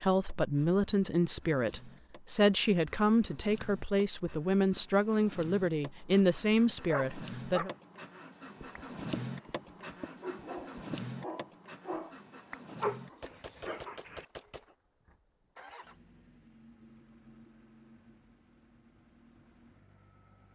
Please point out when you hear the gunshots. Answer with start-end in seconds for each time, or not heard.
13.2-14.7.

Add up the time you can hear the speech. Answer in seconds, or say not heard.
8 s.